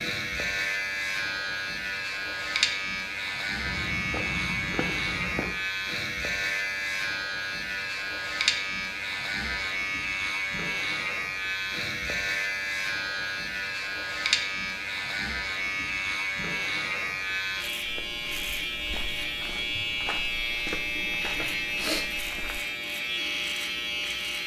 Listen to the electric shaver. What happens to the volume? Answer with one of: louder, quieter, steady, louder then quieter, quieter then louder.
steady.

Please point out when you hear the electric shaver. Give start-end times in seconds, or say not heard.
0.0-24.4.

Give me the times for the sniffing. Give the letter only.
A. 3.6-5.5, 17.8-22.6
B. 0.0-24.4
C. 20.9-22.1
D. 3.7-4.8
C.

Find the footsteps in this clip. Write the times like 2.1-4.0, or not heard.
3.6-5.5, 17.8-22.6.